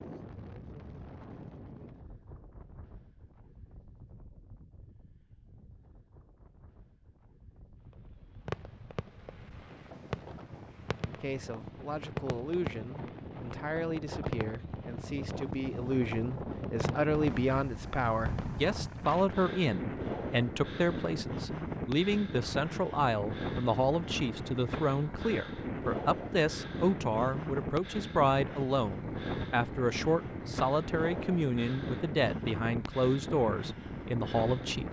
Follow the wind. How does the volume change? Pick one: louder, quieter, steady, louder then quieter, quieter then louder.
louder.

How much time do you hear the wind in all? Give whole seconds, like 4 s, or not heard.
35 s.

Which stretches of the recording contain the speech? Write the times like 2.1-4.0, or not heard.
11.1-34.8.